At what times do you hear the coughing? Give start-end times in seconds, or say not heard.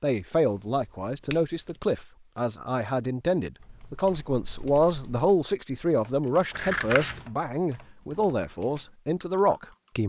not heard.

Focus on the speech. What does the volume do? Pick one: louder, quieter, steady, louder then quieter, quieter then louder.
steady.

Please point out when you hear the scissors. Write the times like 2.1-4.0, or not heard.
0.5-1.8, 6.5-7.3.